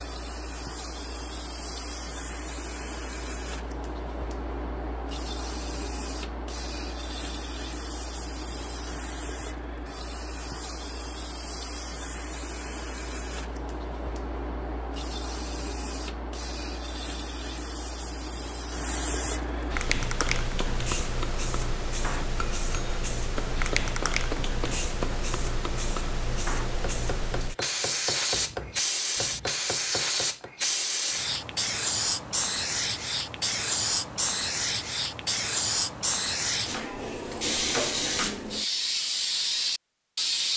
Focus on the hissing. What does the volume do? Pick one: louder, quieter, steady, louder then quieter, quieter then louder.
louder.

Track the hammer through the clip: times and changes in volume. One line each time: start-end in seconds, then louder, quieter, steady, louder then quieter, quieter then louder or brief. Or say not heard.
19.8-30.6 steady.